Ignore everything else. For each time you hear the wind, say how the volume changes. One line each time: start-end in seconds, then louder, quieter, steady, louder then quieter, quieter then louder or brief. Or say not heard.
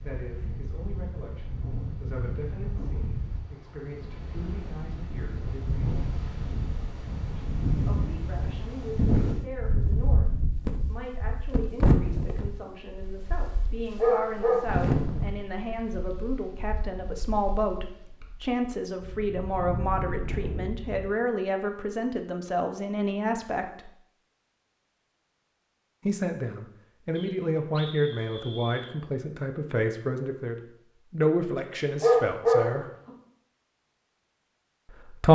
0.0-21.1 louder then quieter.